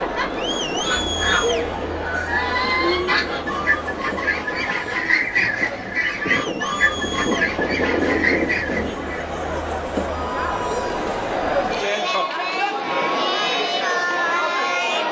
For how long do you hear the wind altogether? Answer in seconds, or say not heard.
9 s.